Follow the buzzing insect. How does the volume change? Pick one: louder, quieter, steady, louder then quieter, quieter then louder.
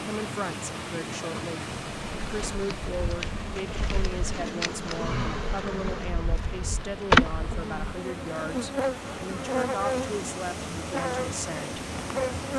louder then quieter.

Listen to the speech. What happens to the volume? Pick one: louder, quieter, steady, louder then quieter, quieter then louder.
steady.